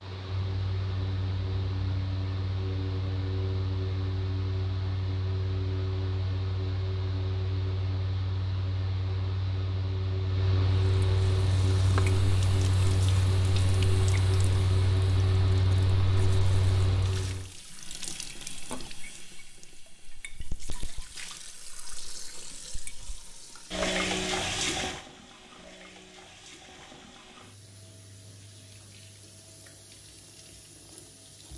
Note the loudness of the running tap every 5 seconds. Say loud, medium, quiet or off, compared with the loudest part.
off, off, medium, medium, loud, quiet, quiet.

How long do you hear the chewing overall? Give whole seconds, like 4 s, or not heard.
not heard.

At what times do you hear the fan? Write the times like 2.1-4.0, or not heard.
0.0-17.5.